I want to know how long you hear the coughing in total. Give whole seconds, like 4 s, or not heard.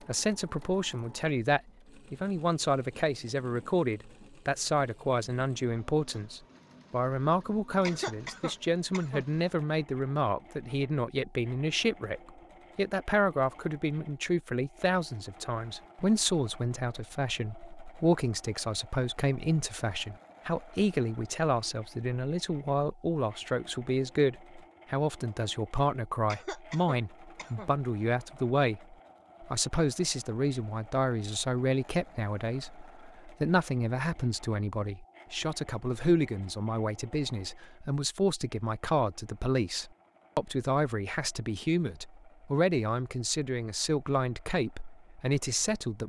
3 s.